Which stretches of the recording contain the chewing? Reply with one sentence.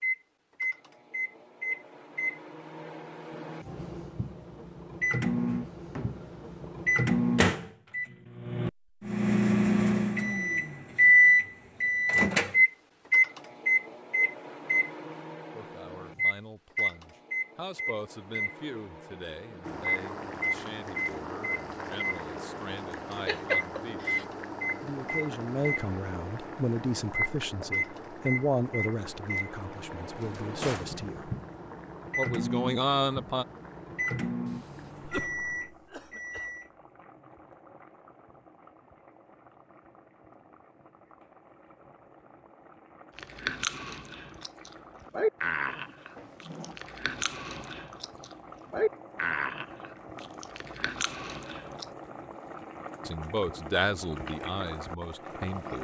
The chewing can be heard from 43.1 to 51.9 s.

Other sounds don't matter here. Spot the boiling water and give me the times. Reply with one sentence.
You can hear the boiling water from 19.6 to 55.7 s.